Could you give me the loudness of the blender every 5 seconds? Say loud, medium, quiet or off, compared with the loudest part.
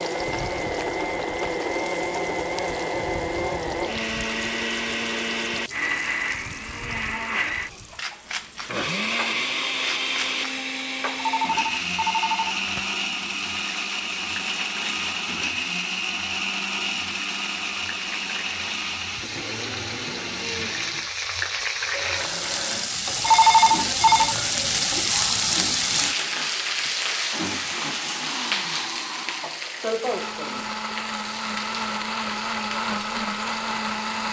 loud, loud, loud, loud, medium, medium, loud.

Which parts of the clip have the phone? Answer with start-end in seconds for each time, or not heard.
11.2-12.8, 23.2-24.4.